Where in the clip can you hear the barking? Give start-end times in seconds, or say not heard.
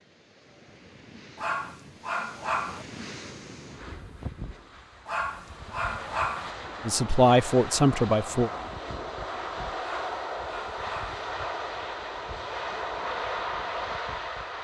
1.4-2.9, 5.0-6.5, 9.8-11.2.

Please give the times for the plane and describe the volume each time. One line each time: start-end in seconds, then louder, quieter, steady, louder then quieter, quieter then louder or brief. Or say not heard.
2.9-14.5 louder.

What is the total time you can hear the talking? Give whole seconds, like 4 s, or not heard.
2 s.